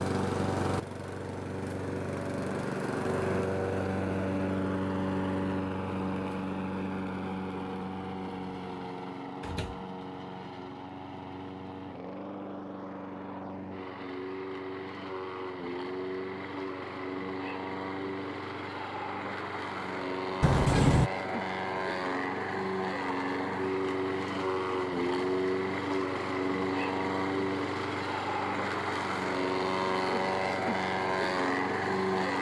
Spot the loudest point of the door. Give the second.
21 s.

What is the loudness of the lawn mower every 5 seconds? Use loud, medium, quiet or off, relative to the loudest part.
loud, medium, medium, medium, loud, loud, loud.